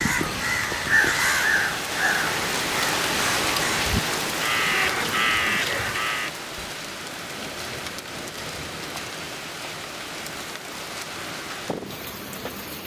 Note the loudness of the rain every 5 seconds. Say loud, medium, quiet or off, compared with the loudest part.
loud, medium, medium.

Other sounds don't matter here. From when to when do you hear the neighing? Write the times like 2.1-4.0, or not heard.
4.7-6.0.